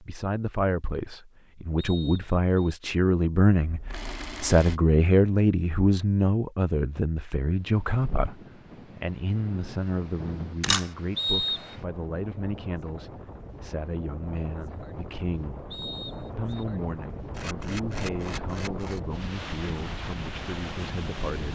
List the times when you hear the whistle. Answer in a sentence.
The whistle can be heard from 1.8 to 2.8 s, from 11.2 to 11.8 s and from 15.7 to 16.6 s.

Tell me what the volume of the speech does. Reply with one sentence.
The volume of the speech goes down.